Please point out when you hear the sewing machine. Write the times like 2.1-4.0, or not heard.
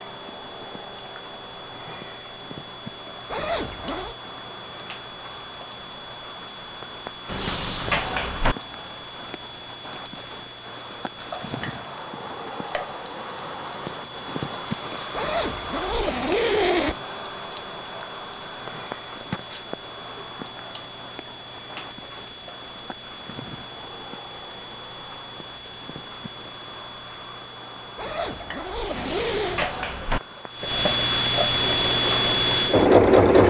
31.5-33.4.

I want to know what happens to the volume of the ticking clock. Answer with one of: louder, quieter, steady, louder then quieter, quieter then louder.
louder.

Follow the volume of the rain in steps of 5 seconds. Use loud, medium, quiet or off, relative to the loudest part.
medium, medium, loud, loud, medium, medium, medium.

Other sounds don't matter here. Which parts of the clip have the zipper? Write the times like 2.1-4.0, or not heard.
3.3-4.2, 15.2-16.9, 27.9-29.6.